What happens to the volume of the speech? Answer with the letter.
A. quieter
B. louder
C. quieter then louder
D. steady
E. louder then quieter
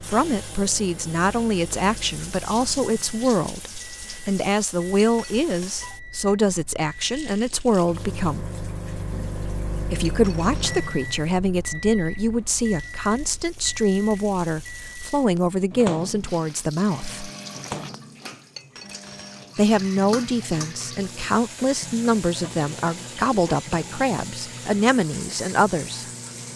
D.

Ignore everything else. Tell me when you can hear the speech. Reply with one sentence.
You can hear the speech from 0.0 to 8.5 s, from 9.9 to 17.3 s and from 19.6 to 26.1 s.